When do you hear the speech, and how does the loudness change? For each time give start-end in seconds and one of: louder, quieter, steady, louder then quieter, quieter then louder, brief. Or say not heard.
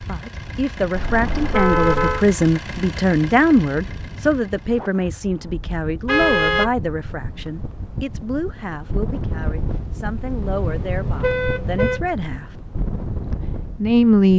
0.0-12.4 quieter
13.3-14.3 brief.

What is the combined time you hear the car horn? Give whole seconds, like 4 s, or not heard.
4 s.